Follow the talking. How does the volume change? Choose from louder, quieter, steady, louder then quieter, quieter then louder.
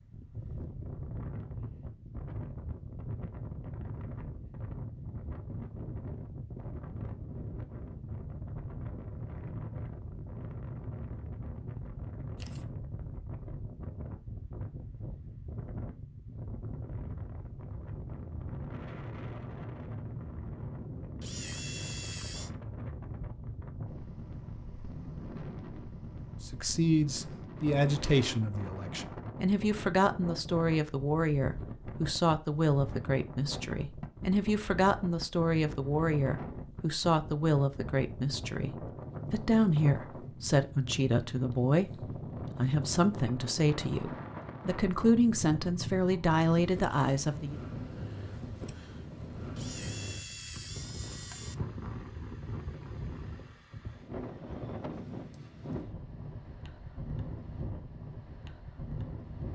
steady.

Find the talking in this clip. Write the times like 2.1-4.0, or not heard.
26.4-47.6.